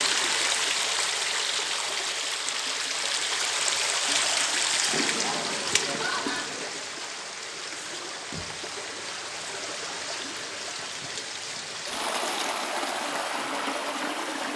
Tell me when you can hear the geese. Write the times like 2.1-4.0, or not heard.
4.9-6.7.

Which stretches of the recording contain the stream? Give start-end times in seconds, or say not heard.
0.0-14.5.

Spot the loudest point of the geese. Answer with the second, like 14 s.
6 s.